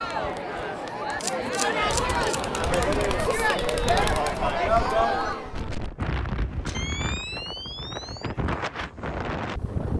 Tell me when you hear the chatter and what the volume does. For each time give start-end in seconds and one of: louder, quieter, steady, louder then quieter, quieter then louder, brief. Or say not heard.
0.0-5.7 louder.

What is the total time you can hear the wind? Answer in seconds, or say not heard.
7 s.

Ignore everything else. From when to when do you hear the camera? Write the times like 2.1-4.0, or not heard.
1.2-2.4, 6.7-8.3.